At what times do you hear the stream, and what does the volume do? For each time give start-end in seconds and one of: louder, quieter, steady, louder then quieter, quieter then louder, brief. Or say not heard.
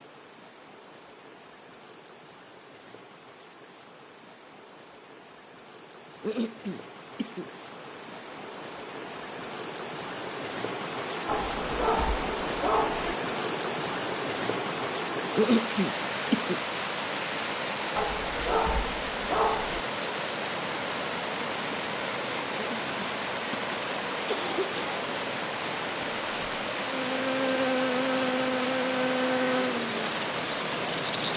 0.0-31.3 louder.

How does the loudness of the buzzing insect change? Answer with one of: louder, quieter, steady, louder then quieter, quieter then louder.
quieter.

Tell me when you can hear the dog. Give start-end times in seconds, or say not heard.
11.2-13.2, 17.9-19.9.